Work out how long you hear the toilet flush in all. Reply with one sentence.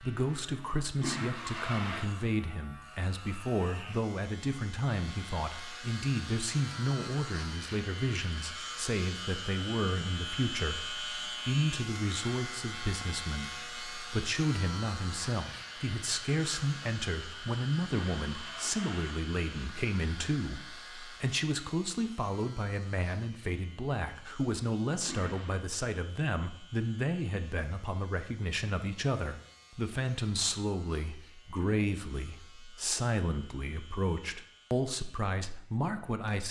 You can hear the toilet flush for 3 seconds altogether.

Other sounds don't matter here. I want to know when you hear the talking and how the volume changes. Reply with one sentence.
The talking can be heard from 0.0 to 36.4 s, at a steady volume.